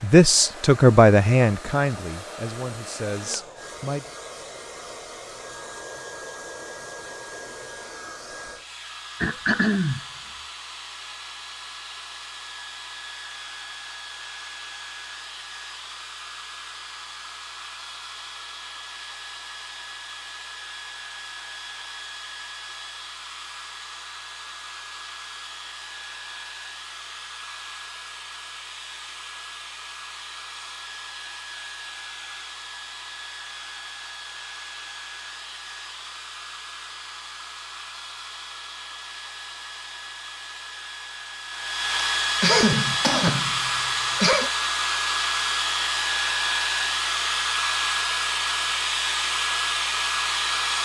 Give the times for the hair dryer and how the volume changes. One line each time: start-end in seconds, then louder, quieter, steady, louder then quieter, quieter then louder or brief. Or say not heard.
0.0-50.8 louder.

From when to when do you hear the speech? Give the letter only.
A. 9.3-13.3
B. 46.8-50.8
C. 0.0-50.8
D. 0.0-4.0
D.